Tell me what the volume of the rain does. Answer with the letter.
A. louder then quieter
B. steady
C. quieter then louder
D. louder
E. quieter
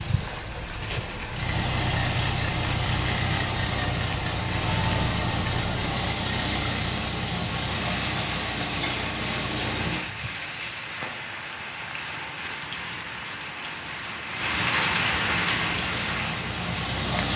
D.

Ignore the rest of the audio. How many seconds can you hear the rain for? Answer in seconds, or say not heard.
17 s.